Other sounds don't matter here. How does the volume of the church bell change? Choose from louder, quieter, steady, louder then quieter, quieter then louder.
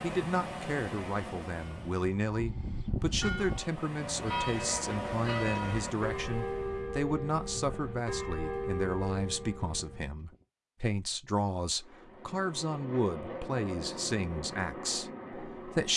steady.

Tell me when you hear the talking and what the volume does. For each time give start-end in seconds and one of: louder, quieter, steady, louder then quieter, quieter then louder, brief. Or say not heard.
0.0-15.9 steady.